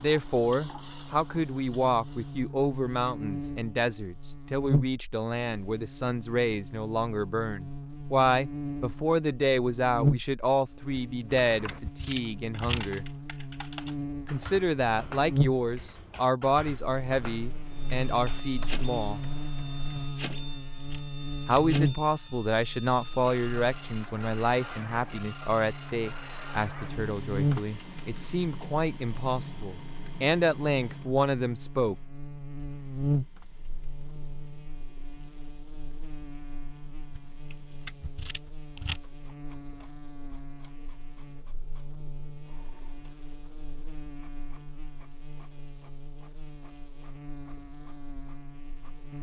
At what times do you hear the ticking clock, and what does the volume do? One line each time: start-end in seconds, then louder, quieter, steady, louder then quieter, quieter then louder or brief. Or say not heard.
not heard.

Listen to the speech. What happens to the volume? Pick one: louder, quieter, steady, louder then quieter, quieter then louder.
steady.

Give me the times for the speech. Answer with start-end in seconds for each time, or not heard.
0.0-13.1, 14.2-19.2, 21.4-31.9.